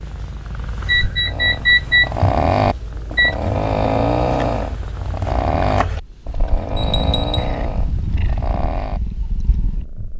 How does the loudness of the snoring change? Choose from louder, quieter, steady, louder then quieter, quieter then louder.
quieter.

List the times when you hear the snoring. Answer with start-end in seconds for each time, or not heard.
1.2-9.0.